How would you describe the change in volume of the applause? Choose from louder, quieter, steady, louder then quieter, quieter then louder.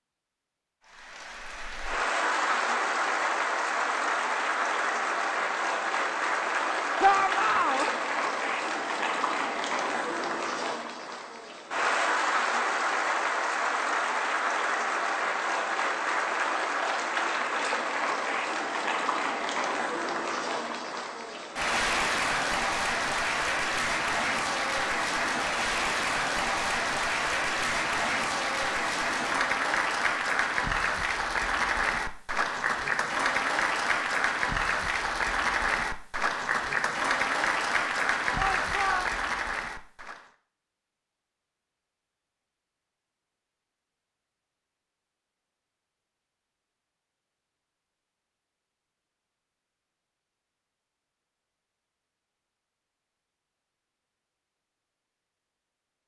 steady.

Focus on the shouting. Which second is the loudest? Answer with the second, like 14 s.
7 s.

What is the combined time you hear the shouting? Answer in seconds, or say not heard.
2 s.